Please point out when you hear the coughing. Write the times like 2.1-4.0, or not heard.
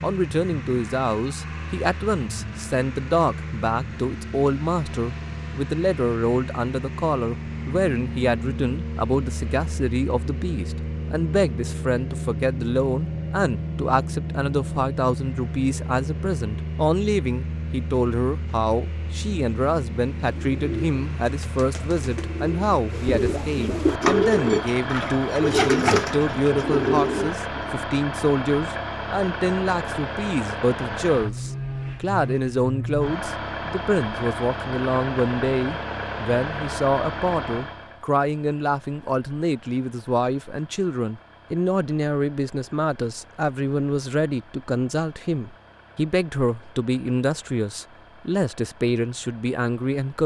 not heard.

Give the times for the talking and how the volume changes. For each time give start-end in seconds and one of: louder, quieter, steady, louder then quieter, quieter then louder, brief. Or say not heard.
0.0-50.2 steady.